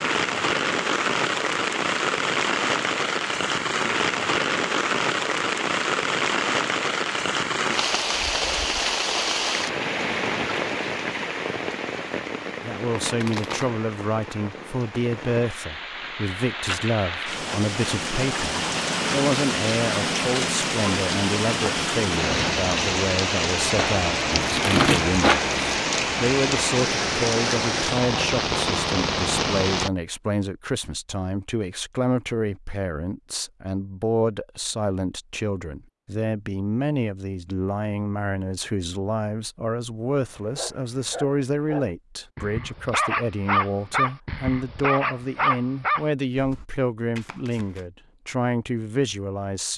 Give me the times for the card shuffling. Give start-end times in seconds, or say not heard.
12.9-13.8, 23.8-25.6, 47.1-47.9.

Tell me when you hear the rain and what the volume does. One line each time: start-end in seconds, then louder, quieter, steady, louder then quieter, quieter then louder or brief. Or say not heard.
0.0-29.9 quieter then louder.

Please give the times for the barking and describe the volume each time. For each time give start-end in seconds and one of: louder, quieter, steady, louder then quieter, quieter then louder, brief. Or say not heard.
40.1-46.6 louder.